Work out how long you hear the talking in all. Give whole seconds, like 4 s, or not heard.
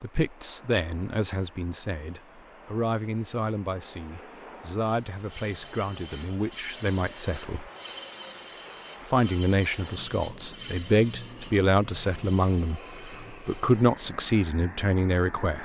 14 s.